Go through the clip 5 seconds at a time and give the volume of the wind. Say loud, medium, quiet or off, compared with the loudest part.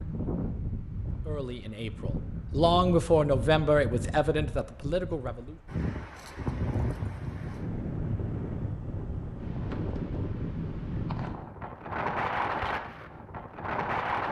medium, loud, loud.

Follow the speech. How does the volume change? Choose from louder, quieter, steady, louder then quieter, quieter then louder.
louder then quieter.